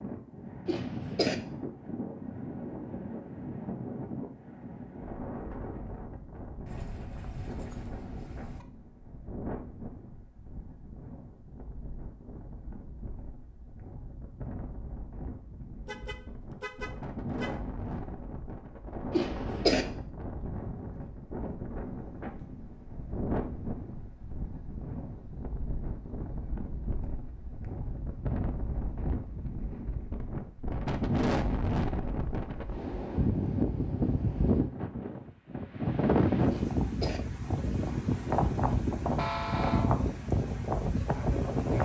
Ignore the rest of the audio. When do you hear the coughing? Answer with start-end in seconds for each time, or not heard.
0.7-1.4, 19.1-19.9, 36.5-37.2.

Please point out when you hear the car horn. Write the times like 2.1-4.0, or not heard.
6.7-8.7, 15.8-17.5, 39.1-40.0.